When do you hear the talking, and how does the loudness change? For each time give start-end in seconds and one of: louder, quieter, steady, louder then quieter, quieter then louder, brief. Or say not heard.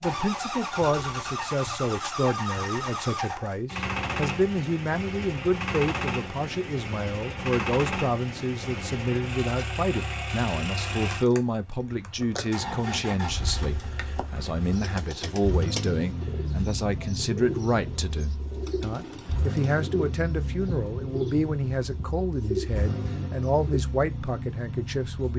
0.0-25.3 steady.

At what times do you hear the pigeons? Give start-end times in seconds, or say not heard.
14.6-23.8.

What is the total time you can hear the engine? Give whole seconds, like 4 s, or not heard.
25 s.